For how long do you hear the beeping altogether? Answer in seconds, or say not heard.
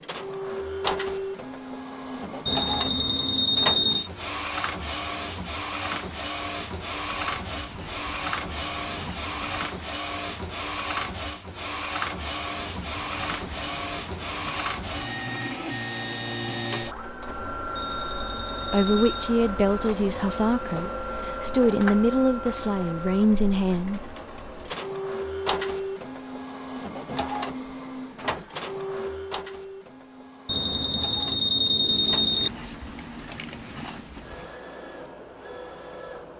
5 s.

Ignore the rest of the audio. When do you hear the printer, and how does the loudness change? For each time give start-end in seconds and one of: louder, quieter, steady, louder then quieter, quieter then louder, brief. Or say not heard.
0.0-36.3 quieter.